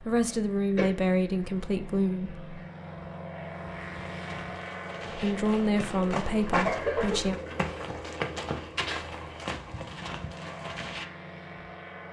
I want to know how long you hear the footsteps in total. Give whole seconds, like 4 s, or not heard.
7 s.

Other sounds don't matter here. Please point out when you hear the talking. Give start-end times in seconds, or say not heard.
0.0-2.4, 5.1-7.4.